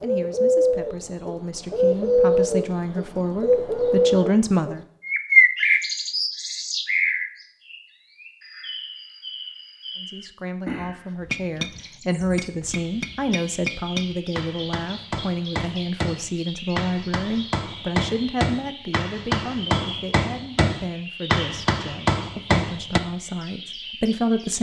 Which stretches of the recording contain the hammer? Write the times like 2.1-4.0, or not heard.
11.2-23.0.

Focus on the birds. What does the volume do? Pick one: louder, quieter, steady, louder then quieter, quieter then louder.
quieter.